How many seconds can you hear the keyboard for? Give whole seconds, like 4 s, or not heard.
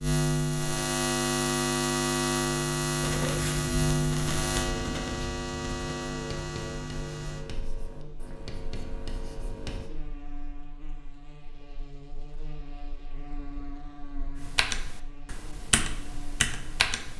3 s.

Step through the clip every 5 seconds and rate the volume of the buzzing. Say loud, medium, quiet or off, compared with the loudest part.
loud, medium, quiet, quiet.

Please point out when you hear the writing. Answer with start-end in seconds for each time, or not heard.
3.0-9.9.